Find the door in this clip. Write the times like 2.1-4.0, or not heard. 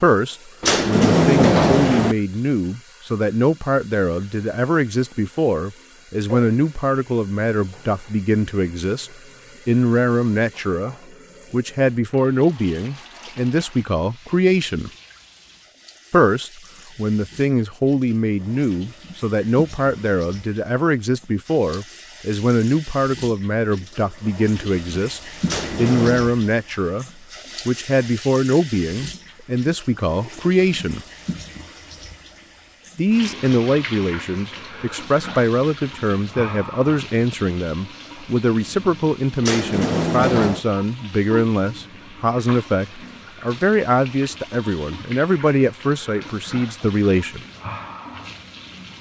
0.6-2.1, 25.4-26.3, 39.4-40.6.